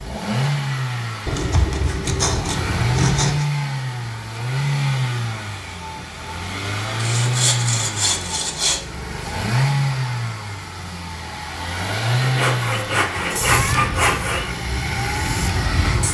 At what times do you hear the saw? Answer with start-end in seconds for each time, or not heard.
1.2-3.5, 7.0-8.8, 12.2-14.5.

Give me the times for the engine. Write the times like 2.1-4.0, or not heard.
0.0-16.0.